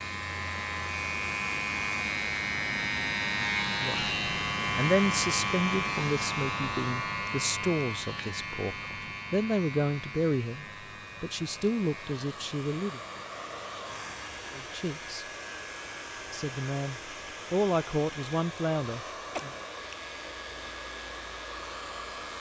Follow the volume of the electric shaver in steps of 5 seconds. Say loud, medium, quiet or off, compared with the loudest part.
loud, loud, quiet, quiet, quiet.